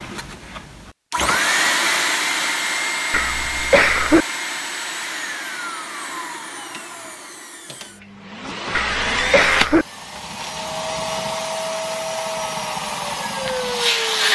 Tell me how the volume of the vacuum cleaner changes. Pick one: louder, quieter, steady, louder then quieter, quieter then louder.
quieter then louder.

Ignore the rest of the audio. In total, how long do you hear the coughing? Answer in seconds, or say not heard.
2 s.